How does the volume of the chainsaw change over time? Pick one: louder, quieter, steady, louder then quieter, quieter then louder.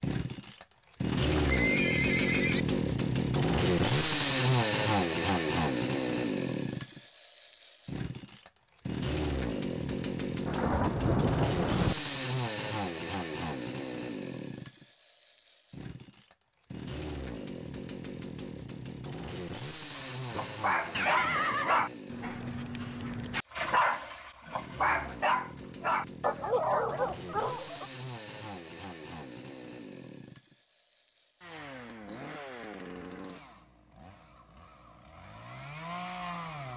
quieter.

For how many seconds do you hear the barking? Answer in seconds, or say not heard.
8 s.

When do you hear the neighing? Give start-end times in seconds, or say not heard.
1.1-2.6, 20.3-21.9.